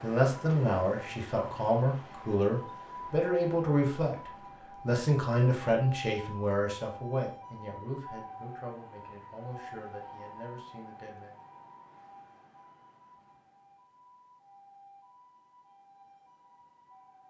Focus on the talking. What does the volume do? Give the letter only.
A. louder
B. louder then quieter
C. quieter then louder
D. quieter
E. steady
D.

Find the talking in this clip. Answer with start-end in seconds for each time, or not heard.
0.0-11.3.